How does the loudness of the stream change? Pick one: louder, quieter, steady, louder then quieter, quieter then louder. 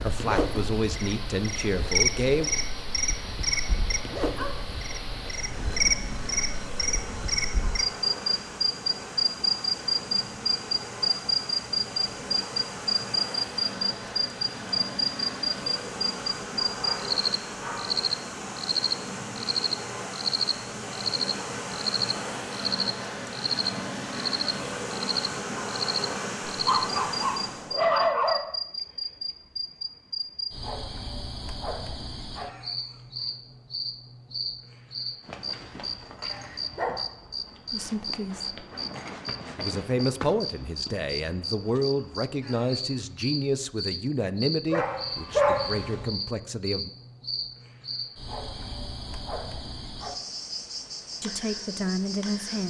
louder.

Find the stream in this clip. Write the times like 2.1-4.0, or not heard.
0.0-27.8.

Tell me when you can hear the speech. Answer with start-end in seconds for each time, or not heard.
0.0-2.5, 37.7-38.6, 39.5-46.9, 51.2-52.6.